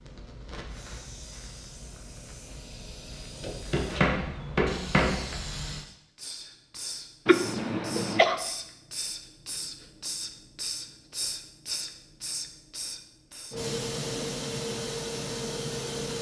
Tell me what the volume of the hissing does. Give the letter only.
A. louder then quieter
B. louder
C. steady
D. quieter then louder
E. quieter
B.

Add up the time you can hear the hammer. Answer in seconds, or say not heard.
2 s.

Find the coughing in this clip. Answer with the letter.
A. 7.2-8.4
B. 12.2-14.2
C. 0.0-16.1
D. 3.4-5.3
A.